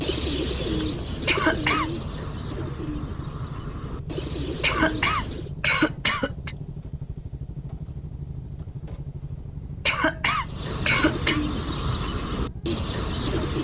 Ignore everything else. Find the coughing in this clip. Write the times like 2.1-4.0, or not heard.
1.2-1.9, 4.6-6.5, 9.8-11.4.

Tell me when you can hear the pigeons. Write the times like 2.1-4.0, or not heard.
0.0-5.5, 10.4-13.5.